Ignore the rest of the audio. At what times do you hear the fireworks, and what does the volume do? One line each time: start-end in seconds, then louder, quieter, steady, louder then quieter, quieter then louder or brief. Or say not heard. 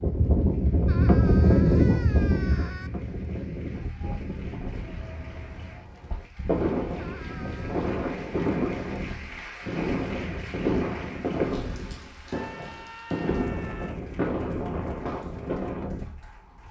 4.7-15.8 steady.